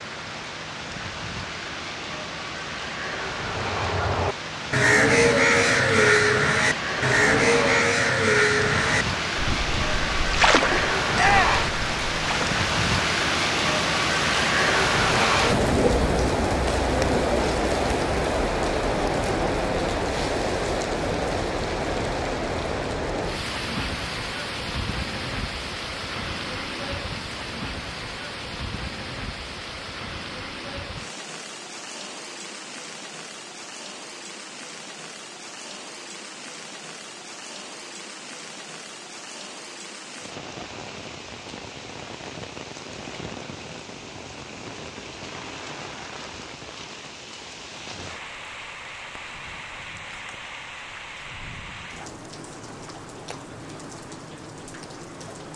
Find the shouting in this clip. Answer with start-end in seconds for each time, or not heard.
11.2-11.7.